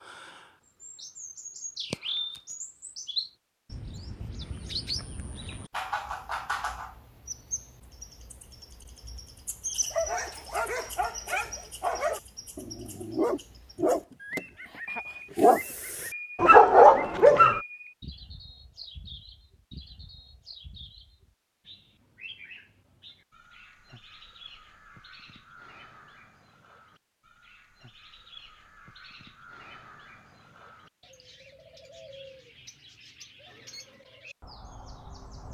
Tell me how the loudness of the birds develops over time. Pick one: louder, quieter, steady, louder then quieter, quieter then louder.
quieter.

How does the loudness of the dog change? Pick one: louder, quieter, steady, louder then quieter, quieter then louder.
louder.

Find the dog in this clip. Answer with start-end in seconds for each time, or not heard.
9.9-17.6.